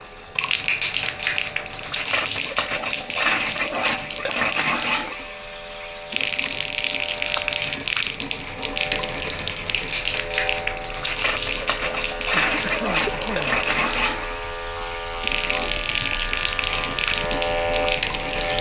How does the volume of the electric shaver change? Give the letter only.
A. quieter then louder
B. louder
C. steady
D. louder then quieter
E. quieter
B.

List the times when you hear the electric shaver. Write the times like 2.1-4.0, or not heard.
0.0-18.5.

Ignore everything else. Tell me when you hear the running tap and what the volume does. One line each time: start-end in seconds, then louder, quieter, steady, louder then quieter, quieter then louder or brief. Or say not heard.
0.0-18.5 steady.